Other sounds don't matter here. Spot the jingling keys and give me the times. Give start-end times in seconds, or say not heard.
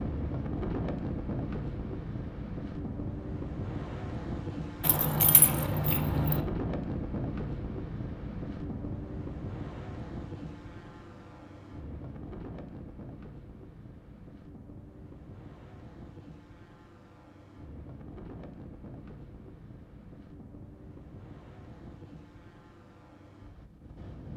4.8-6.4.